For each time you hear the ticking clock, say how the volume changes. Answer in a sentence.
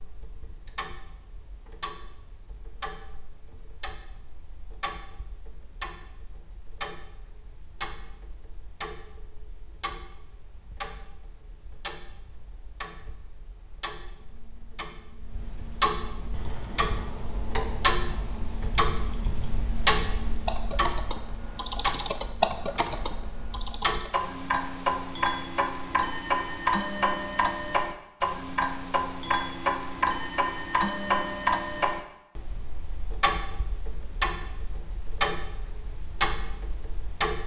The ticking clock can be heard from 0.0 to 37.4 s, getting louder.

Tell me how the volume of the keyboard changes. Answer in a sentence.
The loudness of the keyboard goes up.